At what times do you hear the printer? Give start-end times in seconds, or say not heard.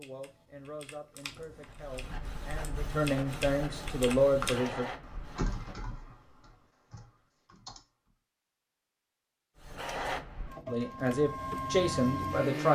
1.6-5.9, 9.6-12.7.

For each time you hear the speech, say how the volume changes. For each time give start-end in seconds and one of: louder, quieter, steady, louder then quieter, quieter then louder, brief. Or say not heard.
0.0-4.8 louder
10.7-12.7 brief.